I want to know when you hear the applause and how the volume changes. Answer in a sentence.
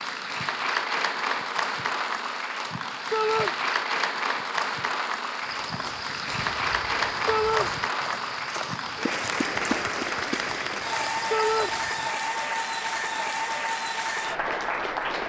You can hear the applause from 0.0 to 15.2 s, at a steady volume.